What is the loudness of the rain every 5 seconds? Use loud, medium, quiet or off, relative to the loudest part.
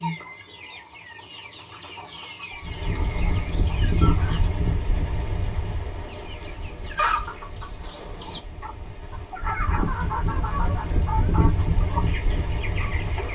loud, medium, loud.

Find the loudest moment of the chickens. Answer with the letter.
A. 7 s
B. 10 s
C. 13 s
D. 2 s
A.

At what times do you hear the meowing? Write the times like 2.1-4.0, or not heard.
not heard.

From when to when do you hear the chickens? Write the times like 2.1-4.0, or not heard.
0.0-4.5, 6.0-13.3.